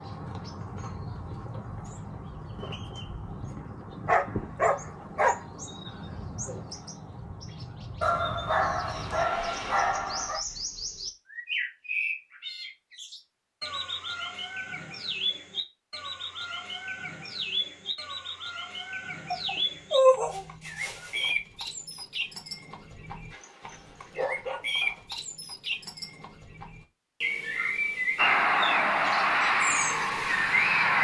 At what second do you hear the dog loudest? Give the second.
20 s.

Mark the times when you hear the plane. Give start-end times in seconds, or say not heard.
28.1-30.9.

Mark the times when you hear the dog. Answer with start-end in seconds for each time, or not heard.
4.0-5.3, 8.0-10.4, 19.3-21.3, 23.3-25.0.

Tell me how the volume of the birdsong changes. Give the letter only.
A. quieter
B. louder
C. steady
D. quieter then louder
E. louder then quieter
B.